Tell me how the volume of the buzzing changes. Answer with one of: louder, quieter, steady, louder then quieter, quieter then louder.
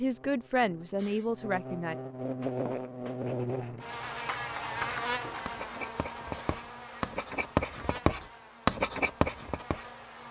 louder then quieter.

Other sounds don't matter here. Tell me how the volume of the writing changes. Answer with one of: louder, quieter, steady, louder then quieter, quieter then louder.
louder.